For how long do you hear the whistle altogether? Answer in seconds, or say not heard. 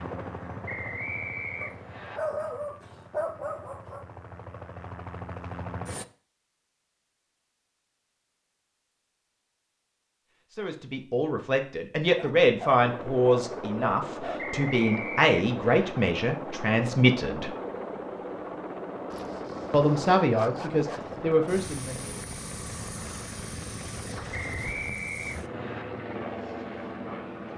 5 s.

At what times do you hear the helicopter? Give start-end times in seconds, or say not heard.
0.0-6.0, 12.8-27.5.